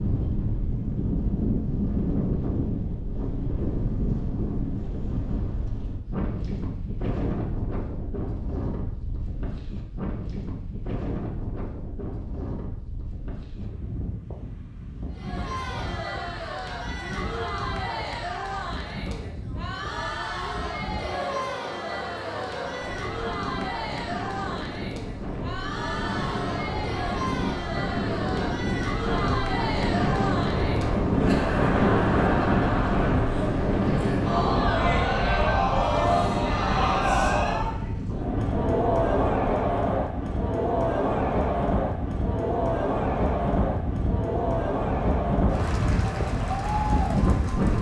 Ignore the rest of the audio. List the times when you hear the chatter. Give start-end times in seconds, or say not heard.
15.1-47.7.